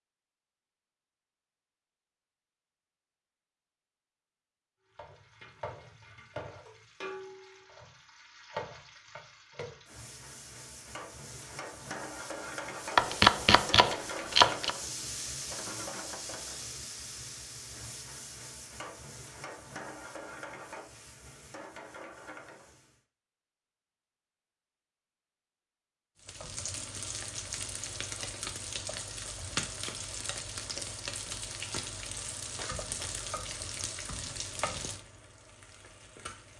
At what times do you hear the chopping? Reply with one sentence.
The chopping can be heard from 12.9 to 14.8 s.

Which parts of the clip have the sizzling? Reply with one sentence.
You can hear the sizzling from 4.8 to 23.1 s and from 26.2 to 36.5 s.